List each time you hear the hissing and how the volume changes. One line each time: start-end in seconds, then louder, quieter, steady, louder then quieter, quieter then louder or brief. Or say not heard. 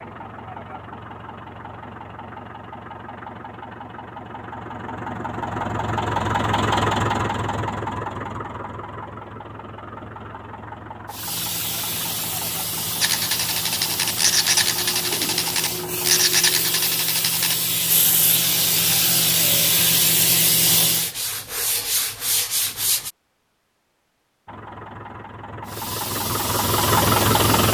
11.1-21.1 louder
25.6-27.6 brief.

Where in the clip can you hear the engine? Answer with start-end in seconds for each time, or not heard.
0.0-16.2, 24.4-27.6.